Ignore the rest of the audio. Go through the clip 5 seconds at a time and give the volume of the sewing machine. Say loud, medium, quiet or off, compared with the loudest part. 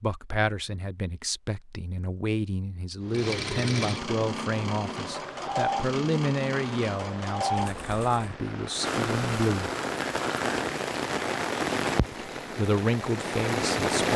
loud, loud, off.